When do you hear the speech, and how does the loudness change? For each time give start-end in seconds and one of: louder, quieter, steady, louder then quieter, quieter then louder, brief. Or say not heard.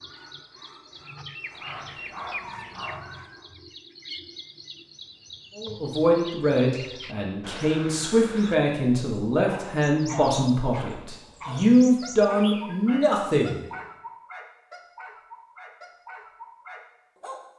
5.5-13.7 steady.